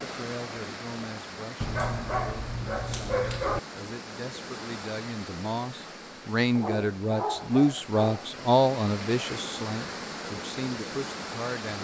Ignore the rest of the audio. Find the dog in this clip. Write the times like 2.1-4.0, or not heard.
1.6-3.6, 6.5-8.3.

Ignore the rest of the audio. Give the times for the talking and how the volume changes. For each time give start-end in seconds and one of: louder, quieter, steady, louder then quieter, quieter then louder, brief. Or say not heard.
0.0-11.7 louder then quieter.